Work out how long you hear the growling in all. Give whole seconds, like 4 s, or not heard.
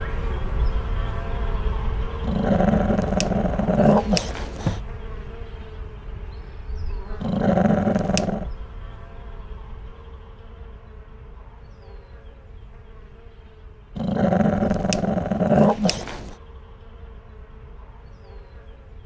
6 s.